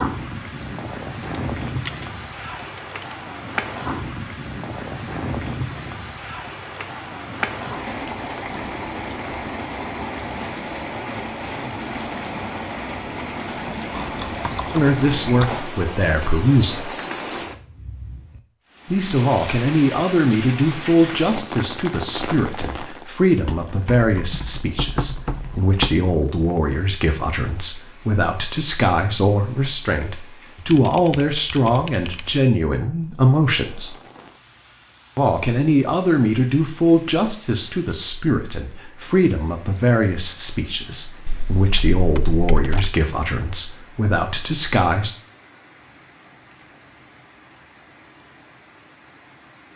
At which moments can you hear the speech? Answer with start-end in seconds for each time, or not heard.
14.7-16.9, 18.9-34.0, 35.1-45.1.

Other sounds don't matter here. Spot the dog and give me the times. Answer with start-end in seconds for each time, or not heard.
not heard.